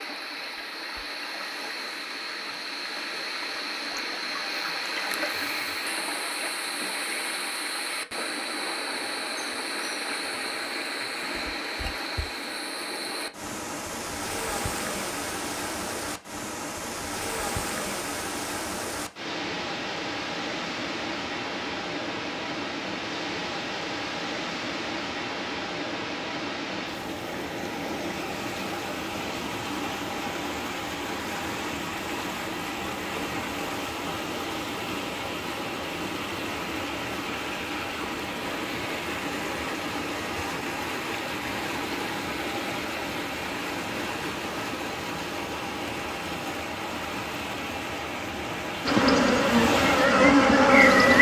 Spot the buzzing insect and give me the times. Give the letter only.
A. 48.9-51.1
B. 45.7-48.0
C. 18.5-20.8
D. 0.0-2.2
A.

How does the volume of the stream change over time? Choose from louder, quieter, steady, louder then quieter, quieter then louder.
steady.